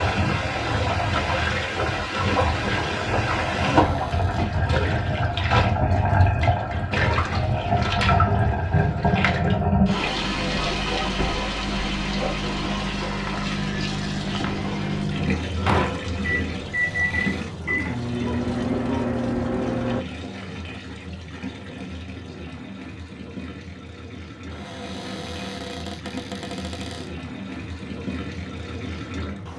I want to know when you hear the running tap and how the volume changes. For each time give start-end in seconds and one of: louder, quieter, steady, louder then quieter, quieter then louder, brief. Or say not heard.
0.0-29.5 quieter.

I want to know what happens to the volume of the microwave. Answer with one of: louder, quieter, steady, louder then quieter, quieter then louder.
louder.